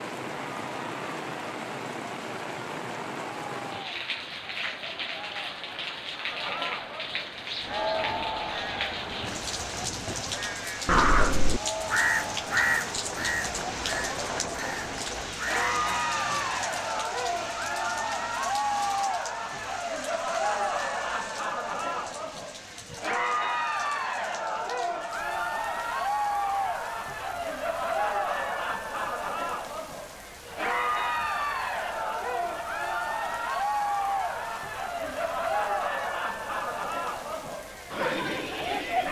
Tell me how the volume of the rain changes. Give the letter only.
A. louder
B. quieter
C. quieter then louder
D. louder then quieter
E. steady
B.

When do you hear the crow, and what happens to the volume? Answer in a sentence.
The crow can be heard from 7.7 to 15.7 s, getting louder then quieter.